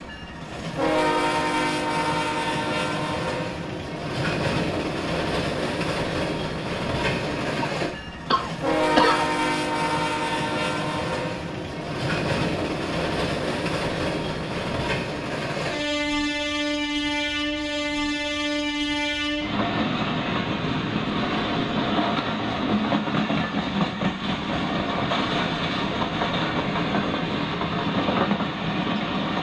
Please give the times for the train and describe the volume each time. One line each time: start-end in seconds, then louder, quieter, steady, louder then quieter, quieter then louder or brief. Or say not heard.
0.0-29.3 steady.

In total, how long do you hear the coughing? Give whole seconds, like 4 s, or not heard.
2 s.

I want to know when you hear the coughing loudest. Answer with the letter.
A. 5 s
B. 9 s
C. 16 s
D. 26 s
B.